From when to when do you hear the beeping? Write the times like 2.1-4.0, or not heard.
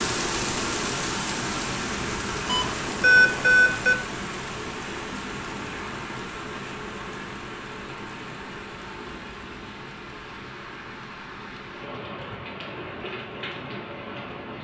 2.5-4.0.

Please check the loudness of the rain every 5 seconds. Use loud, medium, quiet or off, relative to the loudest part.
loud, medium, medium.